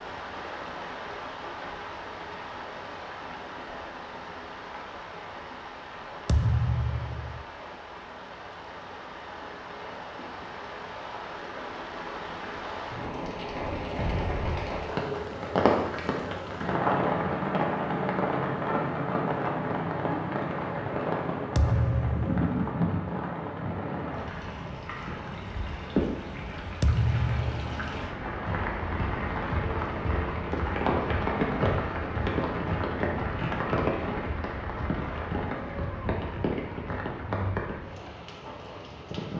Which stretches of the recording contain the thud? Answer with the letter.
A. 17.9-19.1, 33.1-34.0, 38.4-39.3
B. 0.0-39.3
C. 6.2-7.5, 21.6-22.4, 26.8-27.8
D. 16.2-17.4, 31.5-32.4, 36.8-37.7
C.